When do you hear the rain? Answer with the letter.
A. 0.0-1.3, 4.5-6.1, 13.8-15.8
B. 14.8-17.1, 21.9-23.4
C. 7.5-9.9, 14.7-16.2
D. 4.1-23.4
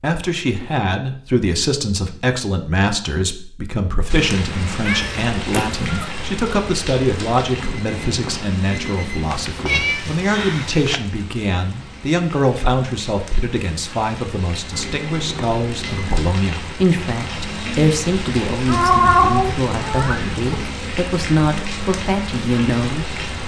D.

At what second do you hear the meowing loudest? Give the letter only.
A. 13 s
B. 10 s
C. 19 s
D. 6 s
C.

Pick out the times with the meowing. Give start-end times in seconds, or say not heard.
4.8-6.2, 9.3-10.9, 18.6-20.6.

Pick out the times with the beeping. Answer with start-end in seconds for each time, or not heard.
7.5-9.9, 14.7-16.2.